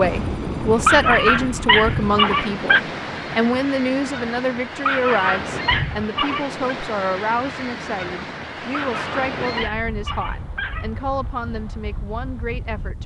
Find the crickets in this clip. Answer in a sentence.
You can't hear the crickets here.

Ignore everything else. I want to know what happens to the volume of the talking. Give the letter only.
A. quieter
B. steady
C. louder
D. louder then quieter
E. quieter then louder
A.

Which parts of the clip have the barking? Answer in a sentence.
The barking can be heard from 0.8 to 2.8 s, from 4.8 to 6.5 s and from 8.8 to 10.9 s.